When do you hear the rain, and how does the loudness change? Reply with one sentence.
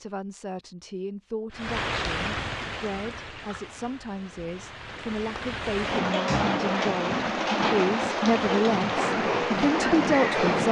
The rain can be heard from 1.5 to 10.6 s, getting quieter then louder.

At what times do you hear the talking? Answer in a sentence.
The talking can be heard from 0.0 to 10.6 s.